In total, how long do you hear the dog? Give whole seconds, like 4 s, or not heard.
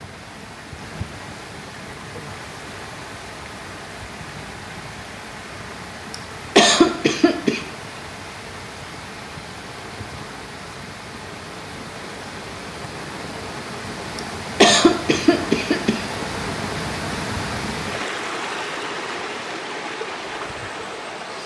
not heard.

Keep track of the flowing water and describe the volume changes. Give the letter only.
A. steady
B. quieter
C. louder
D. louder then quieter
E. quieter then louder
C.